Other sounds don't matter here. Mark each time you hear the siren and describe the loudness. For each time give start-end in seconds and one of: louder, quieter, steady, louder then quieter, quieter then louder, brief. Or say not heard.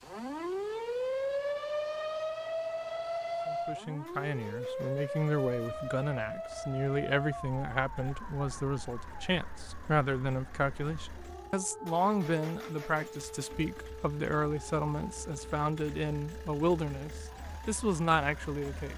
0.0-18.9 quieter.